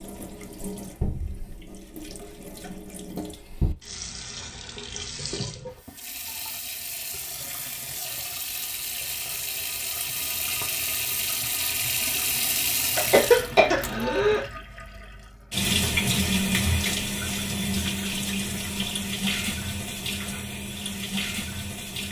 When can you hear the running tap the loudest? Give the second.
16 s.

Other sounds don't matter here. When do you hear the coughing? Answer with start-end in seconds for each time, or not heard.
12.9-14.4.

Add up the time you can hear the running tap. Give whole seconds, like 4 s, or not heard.
22 s.